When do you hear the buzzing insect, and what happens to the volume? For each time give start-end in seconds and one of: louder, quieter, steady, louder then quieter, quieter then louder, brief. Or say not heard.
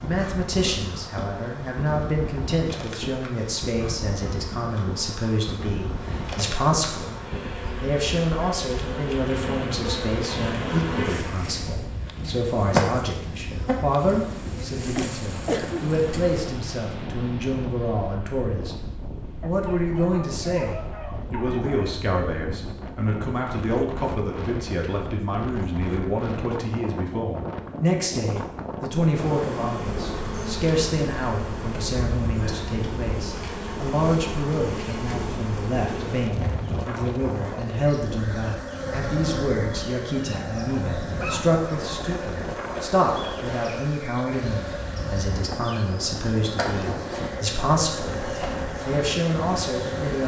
0.0-16.4 louder then quieter
29.1-50.2 steady.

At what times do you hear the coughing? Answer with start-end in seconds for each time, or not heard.
14.8-15.8.